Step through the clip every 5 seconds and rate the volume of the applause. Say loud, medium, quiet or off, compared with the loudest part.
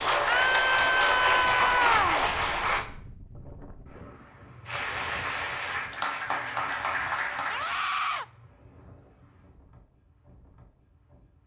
loud, medium, off.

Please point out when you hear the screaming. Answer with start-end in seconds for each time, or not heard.
0.2-2.2, 7.5-8.2.